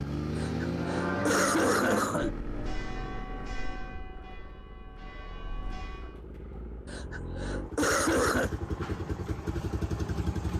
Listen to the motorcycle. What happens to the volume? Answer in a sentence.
The loudness of the motorcycle goes down, then up.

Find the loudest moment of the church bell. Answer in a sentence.
The volume of the church bell peaks at 1 second.